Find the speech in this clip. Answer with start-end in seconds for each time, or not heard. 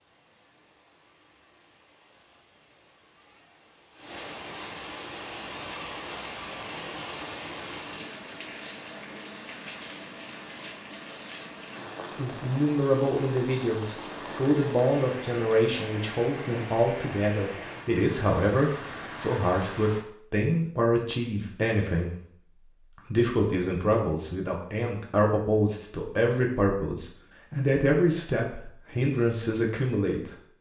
12.2-30.5.